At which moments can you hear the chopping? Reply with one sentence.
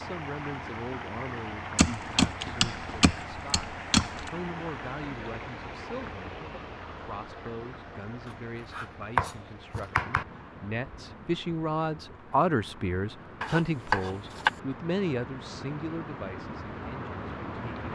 You can hear the chopping from 1.8 to 4.3 s, from 8.2 to 10.2 s and from 13.4 to 14.5 s.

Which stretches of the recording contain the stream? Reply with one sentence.
The stream can be heard from 0.0 to 17.8 s.